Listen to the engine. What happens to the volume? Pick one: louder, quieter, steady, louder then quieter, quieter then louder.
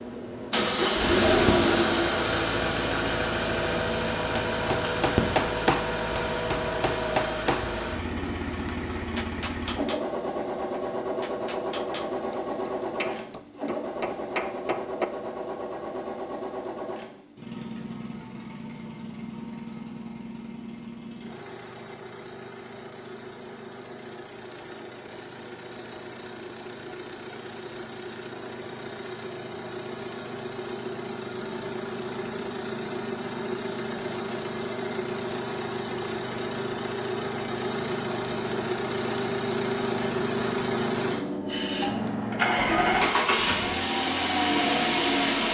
quieter then louder.